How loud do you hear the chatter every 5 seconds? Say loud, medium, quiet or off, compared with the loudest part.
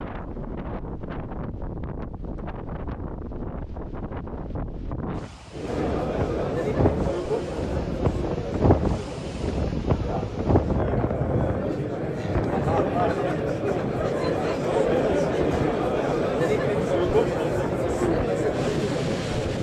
off, medium, loud, loud.